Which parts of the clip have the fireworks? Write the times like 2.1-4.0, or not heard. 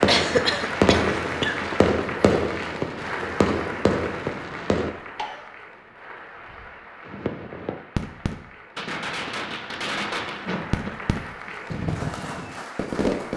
0.0-5.0, 7.0-13.3.